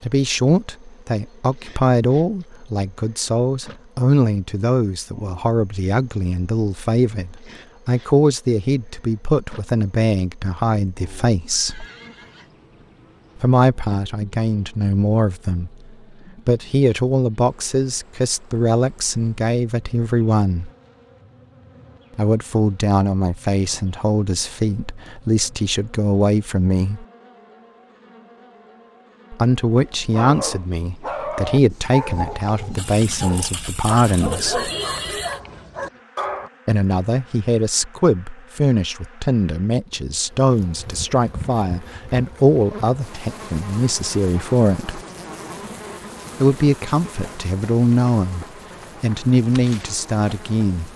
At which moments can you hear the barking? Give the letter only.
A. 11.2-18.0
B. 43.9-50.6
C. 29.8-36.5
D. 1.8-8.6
C.